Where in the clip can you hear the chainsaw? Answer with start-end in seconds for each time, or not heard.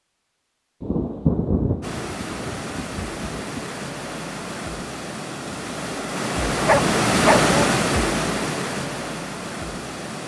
not heard.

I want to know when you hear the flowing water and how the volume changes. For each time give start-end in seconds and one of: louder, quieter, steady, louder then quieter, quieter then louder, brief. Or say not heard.
1.8-10.2 louder then quieter.